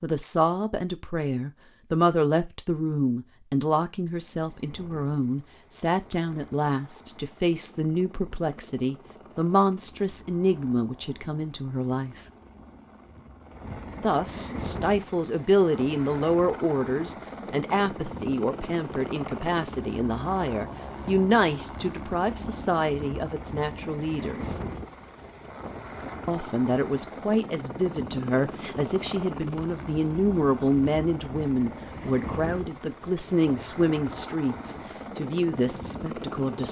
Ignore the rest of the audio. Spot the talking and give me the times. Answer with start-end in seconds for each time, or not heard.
0.0-12.2, 14.0-24.6, 26.2-36.6.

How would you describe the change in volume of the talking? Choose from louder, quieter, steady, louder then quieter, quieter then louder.
steady.